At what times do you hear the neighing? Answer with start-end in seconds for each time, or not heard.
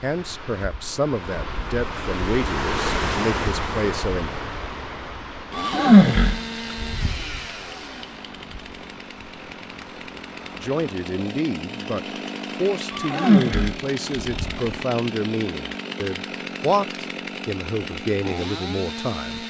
5.5-7.4, 12.9-14.6.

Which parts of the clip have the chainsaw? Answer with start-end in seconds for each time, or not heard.
5.5-19.4.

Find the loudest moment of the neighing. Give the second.
6 s.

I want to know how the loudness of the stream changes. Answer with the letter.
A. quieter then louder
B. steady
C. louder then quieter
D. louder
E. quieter
C.